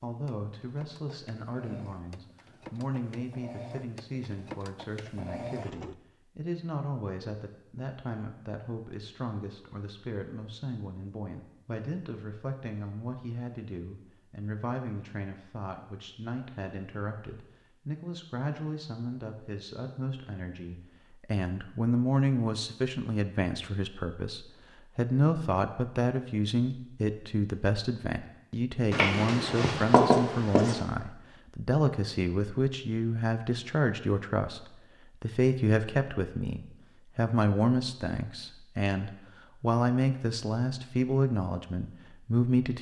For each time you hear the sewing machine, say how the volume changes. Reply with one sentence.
You can hear the sewing machine from 0.1 to 6.0 s, getting louder.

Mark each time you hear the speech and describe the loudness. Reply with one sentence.
The speech can be heard from 0.0 to 42.7 s, getting louder.